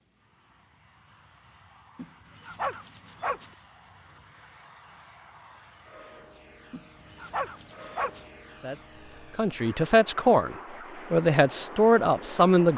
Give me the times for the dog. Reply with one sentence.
You can hear the dog from 1.9 to 3.5 s and from 6.7 to 8.2 s.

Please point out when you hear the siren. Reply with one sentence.
You can't hear the siren here.